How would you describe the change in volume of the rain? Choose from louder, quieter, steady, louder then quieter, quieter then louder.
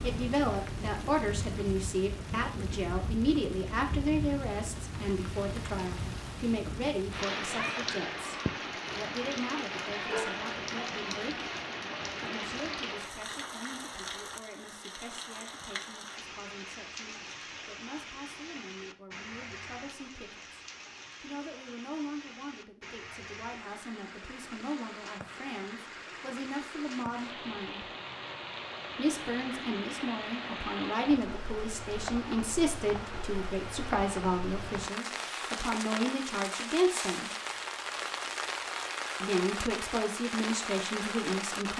quieter then louder.